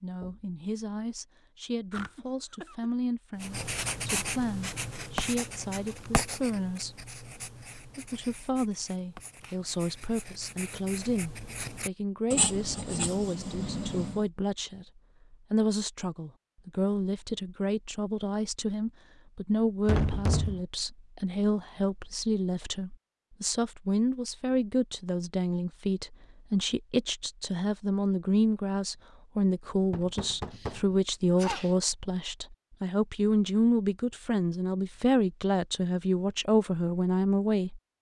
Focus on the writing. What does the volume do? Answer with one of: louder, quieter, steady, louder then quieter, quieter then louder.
quieter then louder.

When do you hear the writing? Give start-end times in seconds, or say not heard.
3.4-14.2.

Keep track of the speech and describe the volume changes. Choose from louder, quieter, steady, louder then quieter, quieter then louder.
louder.